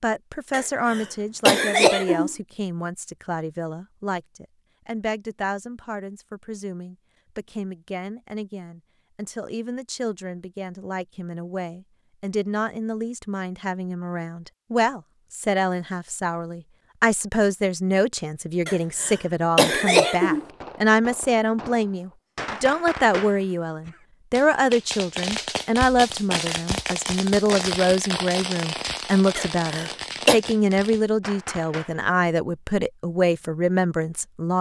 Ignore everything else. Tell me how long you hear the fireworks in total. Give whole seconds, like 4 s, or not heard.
12 s.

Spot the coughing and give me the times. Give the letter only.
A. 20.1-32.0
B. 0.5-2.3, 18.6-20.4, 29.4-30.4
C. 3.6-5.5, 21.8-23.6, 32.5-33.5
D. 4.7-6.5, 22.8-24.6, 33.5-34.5
B.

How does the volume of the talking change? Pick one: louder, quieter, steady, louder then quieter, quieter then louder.
louder.